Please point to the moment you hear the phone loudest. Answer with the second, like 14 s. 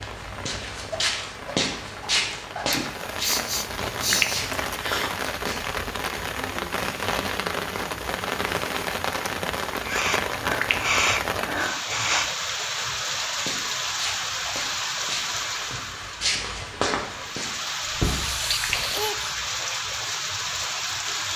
4 s.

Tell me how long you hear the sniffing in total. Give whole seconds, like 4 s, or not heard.
6 s.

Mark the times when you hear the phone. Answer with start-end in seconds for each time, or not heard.
3.9-4.5, 10.2-10.9, 18.3-18.9.